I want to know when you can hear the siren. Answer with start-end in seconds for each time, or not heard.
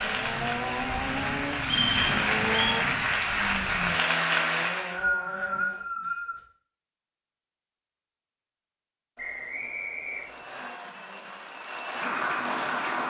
not heard.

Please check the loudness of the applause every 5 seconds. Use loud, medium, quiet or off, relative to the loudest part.
loud, off, medium.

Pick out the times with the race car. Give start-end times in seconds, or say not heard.
0.0-5.8.